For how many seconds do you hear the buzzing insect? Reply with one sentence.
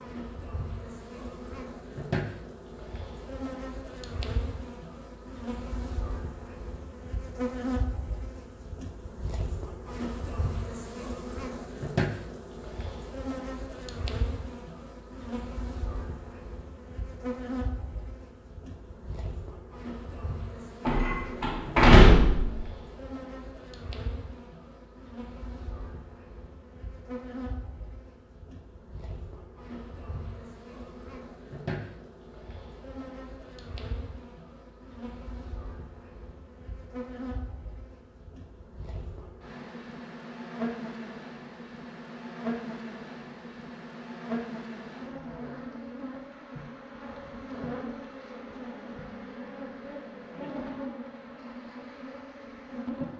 You can hear the buzzing insect for 53 seconds altogether.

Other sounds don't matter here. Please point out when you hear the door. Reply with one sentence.
The door can be heard from 20.9 to 22.6 s.